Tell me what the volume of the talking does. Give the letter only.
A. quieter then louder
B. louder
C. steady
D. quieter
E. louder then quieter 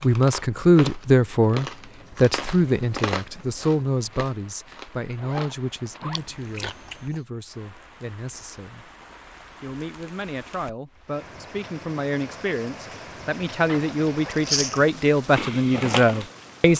A.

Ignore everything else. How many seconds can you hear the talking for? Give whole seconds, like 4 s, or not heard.
16 s.